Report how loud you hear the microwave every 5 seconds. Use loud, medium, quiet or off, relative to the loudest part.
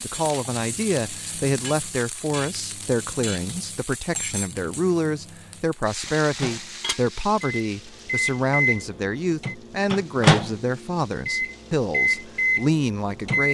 quiet, medium, loud.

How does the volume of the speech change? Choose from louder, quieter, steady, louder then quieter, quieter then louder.
steady.